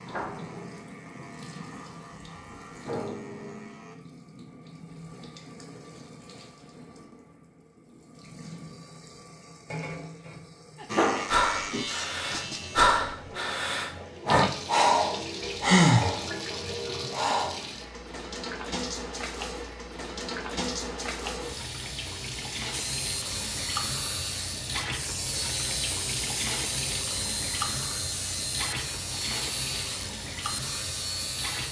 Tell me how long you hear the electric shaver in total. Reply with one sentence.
The electric shaver can be heard for 15 seconds in total.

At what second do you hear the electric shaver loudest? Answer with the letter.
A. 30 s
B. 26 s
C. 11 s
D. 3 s
C.